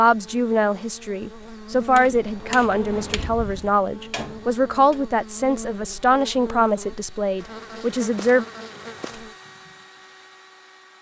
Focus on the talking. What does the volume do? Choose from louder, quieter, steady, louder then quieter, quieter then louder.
steady.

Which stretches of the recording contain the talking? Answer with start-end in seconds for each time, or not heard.
0.0-8.4.